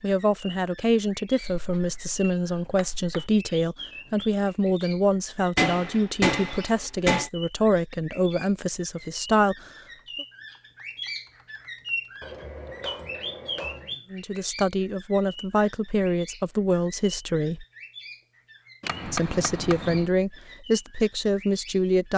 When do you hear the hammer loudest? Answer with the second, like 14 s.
6 s.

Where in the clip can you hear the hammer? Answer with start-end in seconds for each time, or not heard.
1.5-3.3, 5.5-7.3, 12.2-13.9, 18.8-20.1.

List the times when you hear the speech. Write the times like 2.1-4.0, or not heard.
0.0-10.2, 14.1-17.6, 19.1-22.1.